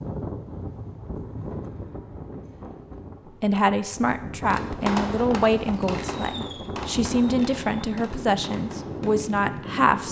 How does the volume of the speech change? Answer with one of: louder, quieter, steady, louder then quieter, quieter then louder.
steady.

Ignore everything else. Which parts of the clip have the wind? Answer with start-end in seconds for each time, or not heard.
0.0-10.0.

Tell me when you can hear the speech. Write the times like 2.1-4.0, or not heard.
3.4-10.0.